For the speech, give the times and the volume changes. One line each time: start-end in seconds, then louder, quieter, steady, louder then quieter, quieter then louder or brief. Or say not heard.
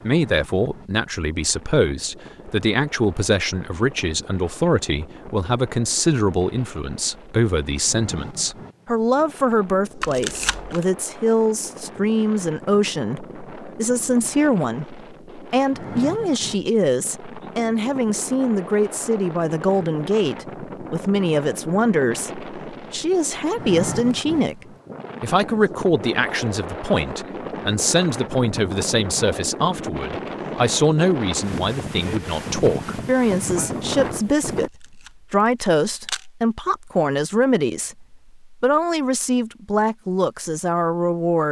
0.0-24.6 steady
25.2-41.4 steady.